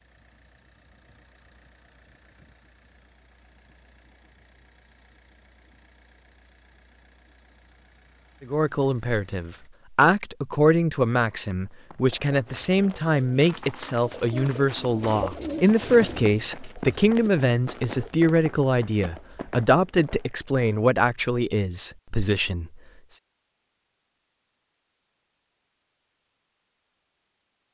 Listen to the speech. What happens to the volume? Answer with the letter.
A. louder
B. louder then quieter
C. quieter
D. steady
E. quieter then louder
D.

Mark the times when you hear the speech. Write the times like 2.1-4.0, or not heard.
8.4-23.2.